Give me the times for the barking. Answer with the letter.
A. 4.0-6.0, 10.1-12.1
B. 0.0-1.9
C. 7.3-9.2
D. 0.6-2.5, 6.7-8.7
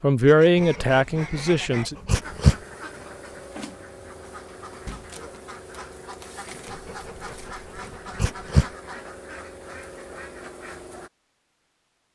D.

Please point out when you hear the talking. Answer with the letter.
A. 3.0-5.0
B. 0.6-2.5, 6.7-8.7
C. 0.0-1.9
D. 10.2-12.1
C.